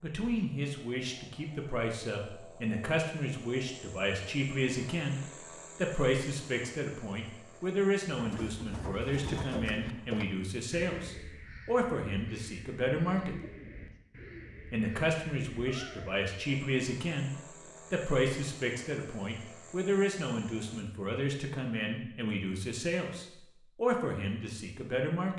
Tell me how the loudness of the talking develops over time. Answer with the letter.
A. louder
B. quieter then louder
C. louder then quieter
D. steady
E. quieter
D.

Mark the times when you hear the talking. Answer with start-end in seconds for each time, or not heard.
0.0-13.4, 14.7-25.3.